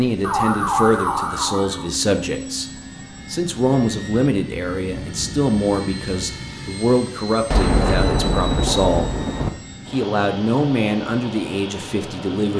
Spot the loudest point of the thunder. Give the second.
8 s.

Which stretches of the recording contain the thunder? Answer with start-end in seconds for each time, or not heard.
7.5-9.5.